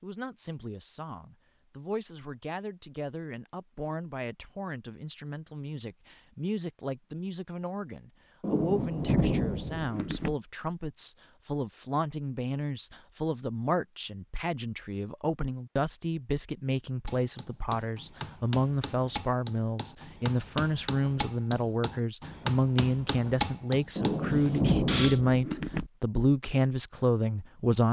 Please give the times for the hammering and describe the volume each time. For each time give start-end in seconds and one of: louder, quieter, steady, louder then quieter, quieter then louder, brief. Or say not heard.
17.1-25.2 louder.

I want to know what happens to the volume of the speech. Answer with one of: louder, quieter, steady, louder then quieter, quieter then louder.
louder.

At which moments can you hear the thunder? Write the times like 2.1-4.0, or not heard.
8.4-10.3, 23.9-25.9.